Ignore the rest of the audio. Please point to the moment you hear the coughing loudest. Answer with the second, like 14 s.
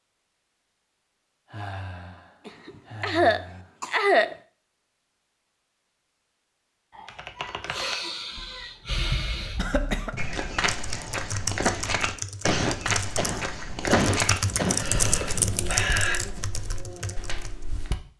4 s.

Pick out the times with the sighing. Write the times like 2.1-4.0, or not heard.
1.4-3.7, 6.9-9.7, 14.4-16.2.